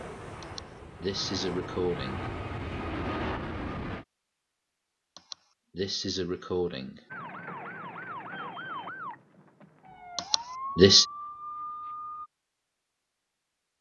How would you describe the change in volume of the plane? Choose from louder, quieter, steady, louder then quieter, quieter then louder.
louder.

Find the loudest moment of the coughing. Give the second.
11 s.